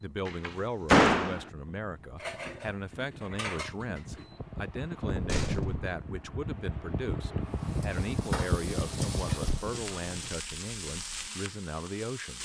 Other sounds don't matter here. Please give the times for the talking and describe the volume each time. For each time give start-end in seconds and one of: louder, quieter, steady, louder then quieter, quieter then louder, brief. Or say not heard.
0.0-12.3 steady.